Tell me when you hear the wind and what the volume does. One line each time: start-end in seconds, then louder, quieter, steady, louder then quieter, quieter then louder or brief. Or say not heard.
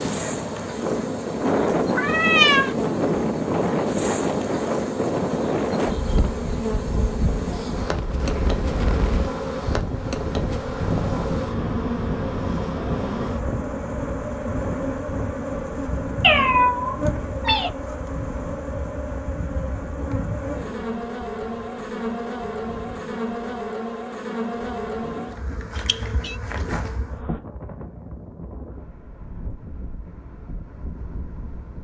0.0-31.7 quieter.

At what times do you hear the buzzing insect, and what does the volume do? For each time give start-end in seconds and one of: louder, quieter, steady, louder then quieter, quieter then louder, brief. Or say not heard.
0.0-27.4 steady.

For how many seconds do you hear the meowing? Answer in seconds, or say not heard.
3 s.